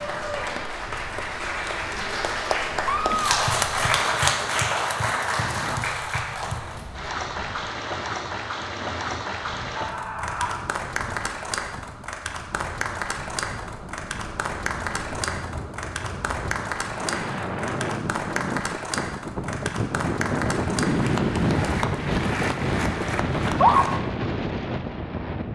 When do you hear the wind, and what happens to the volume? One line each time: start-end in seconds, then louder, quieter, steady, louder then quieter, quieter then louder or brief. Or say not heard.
0.0-25.5 louder.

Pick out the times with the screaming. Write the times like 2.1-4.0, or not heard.
2.9-3.6, 9.8-10.7, 23.4-23.9.